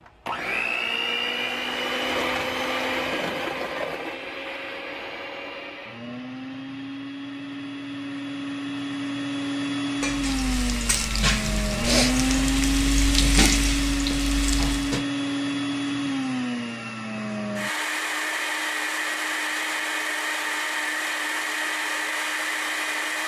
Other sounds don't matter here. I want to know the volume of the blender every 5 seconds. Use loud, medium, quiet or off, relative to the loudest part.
loud, medium, loud, loud, loud.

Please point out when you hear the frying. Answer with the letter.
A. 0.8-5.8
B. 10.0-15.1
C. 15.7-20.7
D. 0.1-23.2
B.